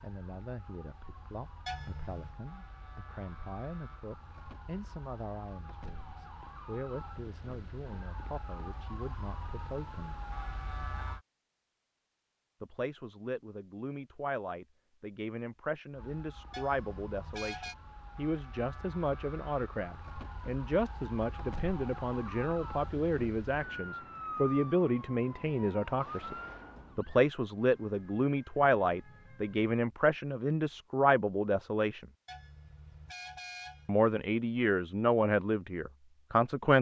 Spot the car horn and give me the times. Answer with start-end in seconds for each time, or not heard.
1.6-2.4, 16.5-17.8, 32.2-34.0.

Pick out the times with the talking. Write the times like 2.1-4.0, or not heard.
0.0-10.2, 12.6-26.4, 26.9-32.0, 33.9-36.7.